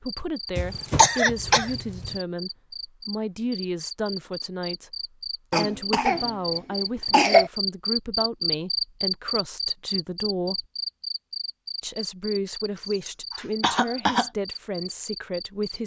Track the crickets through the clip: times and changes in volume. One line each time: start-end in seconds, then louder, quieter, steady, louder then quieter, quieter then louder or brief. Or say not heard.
0.1-15.8 louder then quieter.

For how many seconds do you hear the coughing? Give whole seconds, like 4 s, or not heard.
5 s.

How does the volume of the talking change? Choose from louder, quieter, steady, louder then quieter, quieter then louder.
steady.